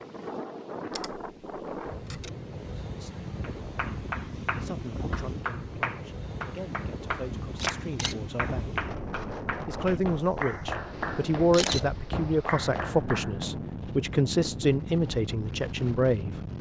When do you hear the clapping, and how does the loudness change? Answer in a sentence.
The clapping can be heard from 3.4 to 13.6 s, at a steady volume.